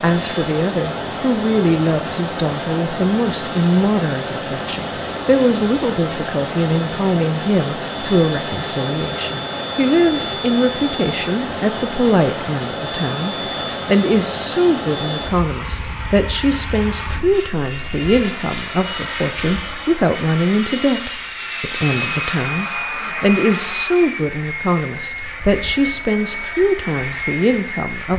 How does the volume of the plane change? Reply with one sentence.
The volume of the plane stays about the same.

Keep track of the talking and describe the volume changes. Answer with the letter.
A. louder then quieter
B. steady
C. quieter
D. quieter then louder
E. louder
B.